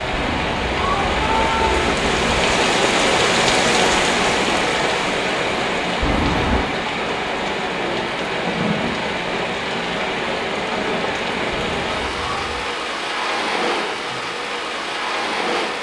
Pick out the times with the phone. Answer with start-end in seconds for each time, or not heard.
not heard.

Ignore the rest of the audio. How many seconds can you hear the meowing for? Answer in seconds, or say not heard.
4 s.